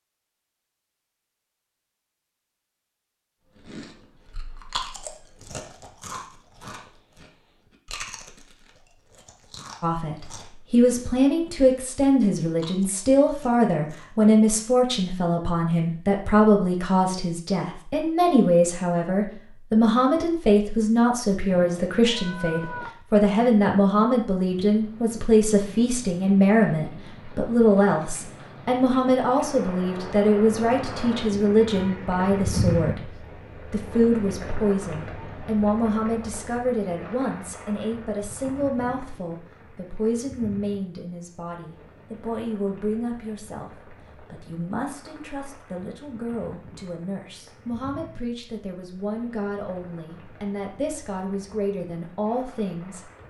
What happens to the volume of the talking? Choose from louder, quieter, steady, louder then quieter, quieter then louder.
quieter.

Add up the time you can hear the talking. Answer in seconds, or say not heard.
43 s.